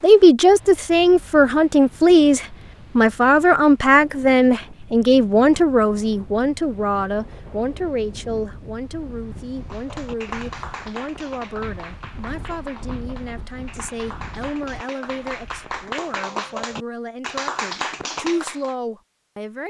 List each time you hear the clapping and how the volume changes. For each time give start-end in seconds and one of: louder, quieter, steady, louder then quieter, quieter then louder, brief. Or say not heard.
9.7-18.8 quieter then louder.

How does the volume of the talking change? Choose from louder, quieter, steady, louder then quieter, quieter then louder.
quieter.